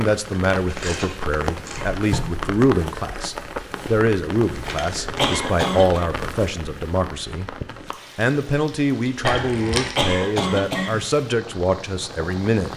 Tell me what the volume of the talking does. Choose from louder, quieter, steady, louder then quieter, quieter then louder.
steady.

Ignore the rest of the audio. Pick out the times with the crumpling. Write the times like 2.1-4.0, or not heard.
0.3-2.0, 4.5-5.5, 9.2-10.0.